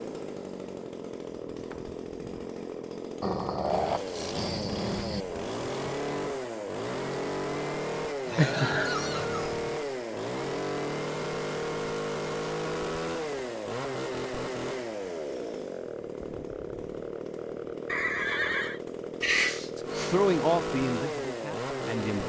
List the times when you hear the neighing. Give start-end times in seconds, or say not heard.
8.2-9.5, 17.9-18.8.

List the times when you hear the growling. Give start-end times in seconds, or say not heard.
3.2-5.2, 8.3-9.7, 19.2-20.2.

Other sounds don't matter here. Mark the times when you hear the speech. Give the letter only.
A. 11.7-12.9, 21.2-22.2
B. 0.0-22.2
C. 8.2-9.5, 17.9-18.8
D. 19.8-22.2
D.